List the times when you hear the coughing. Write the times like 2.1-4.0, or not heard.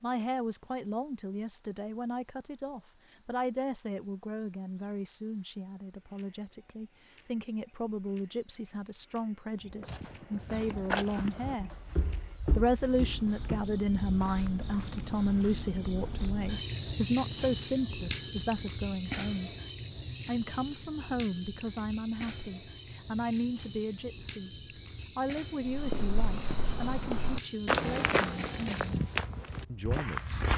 not heard.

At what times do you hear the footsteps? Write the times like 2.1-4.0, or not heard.
9.6-15.7, 25.6-30.5.